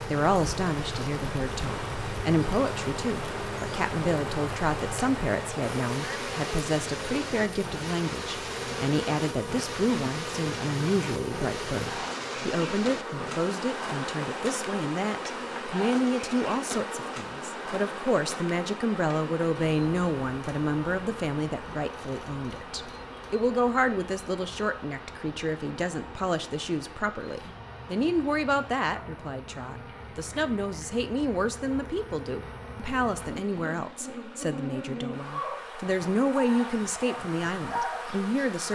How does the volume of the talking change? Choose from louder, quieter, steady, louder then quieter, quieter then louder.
steady.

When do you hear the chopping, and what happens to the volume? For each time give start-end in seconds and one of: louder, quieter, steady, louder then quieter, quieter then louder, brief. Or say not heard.
not heard.